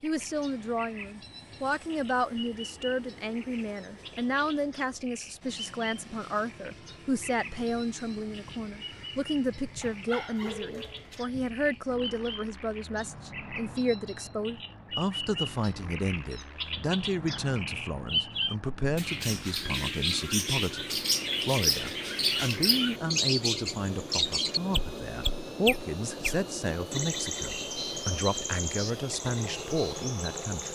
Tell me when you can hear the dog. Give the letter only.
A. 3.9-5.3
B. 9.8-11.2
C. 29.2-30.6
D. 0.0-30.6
B.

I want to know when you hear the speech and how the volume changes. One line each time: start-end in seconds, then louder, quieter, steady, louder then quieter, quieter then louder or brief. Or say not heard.
0.0-30.6 steady.